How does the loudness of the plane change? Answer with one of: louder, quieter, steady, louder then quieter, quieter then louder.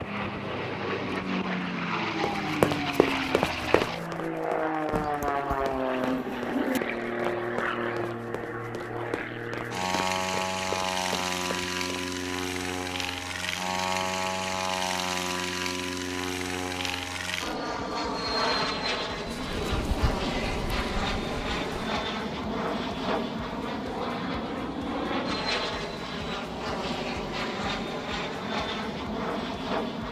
steady.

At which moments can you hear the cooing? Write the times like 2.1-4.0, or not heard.
4.9-6.8, 19.2-22.0.